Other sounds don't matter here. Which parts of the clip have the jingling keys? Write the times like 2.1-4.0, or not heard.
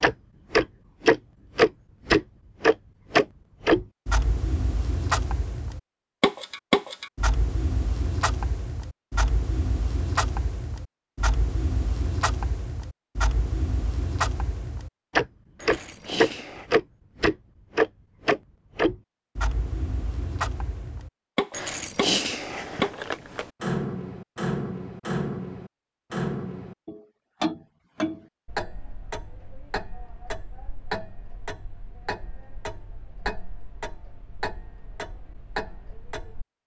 15.6-16.6, 21.5-23.5.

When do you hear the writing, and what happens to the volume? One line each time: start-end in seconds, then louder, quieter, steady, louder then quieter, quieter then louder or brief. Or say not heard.
not heard.